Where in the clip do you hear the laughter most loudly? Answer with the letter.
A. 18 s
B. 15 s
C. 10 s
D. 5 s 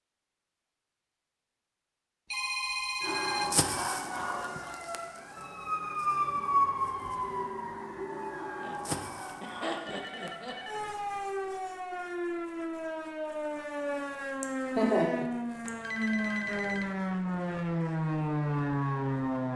B.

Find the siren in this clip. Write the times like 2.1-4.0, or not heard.
3.0-19.5.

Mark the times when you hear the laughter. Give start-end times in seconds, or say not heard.
3.6-4.8, 8.6-10.6, 14.4-15.7.